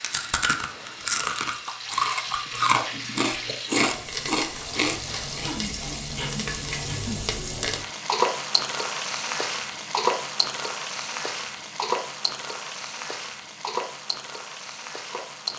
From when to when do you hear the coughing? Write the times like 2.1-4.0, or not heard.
5.4-7.2.